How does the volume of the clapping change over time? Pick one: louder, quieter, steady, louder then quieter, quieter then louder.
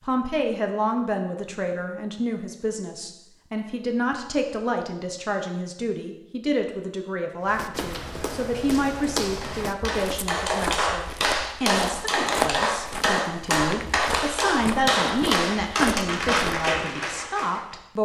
steady.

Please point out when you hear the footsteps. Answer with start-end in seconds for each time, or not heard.
7.5-16.7.